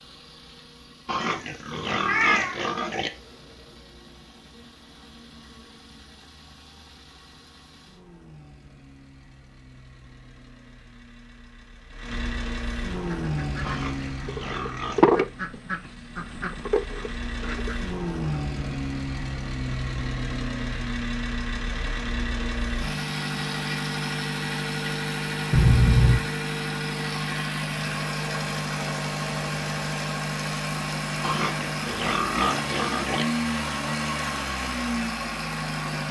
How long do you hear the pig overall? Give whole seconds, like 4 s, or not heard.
6 s.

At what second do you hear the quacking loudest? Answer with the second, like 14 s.
15 s.